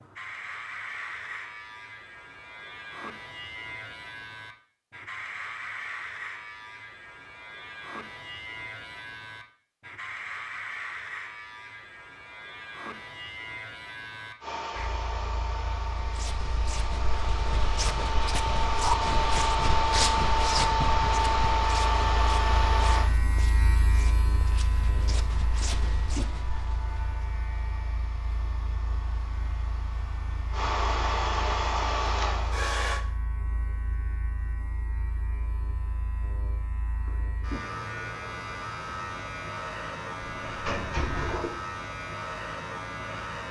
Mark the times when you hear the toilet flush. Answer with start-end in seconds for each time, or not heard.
40.4-41.5.